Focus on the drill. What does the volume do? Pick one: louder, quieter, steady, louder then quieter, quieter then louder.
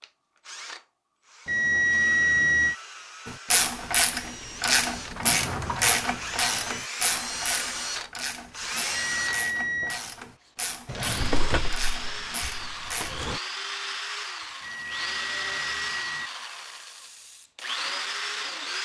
louder.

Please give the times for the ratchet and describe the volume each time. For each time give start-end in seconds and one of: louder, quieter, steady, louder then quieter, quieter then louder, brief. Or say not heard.
3.2-13.2 quieter.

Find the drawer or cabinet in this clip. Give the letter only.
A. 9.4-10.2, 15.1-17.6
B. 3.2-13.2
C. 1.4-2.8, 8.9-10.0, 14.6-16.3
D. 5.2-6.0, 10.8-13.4
D.